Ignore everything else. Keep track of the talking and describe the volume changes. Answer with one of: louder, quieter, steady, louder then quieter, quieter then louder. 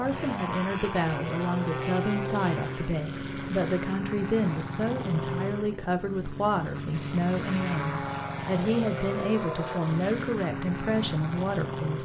steady.